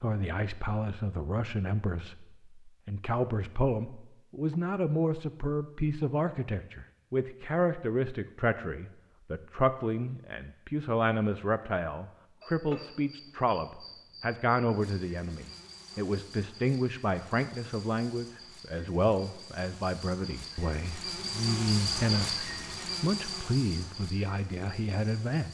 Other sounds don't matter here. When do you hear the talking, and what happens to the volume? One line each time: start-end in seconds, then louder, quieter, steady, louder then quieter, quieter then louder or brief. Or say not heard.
0.0-25.4 steady.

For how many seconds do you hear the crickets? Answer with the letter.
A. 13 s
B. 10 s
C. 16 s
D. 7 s
A.